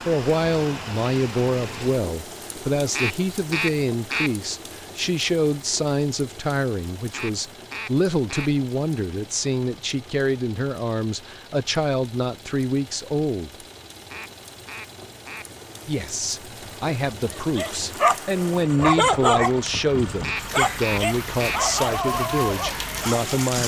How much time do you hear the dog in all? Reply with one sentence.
You can hear the dog for 6 seconds altogether.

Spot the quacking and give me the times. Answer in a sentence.
You can hear the quacking from 2.9 to 4.3 s, from 7.1 to 8.5 s, from 14.1 to 15.4 s and from 20.2 to 21.6 s.